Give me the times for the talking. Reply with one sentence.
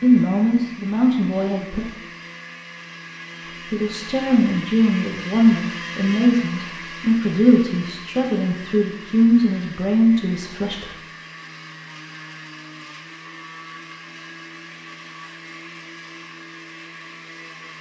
You can hear the talking from 0.0 to 1.8 s and from 3.7 to 10.9 s.